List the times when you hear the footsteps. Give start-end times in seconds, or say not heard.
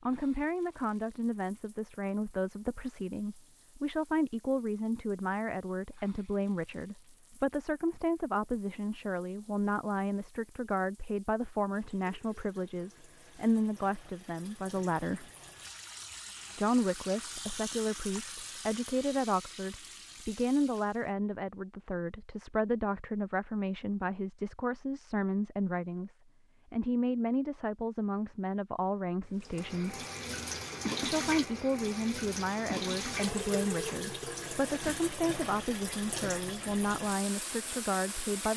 not heard.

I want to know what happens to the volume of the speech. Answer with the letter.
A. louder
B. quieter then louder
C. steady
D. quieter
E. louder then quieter
C.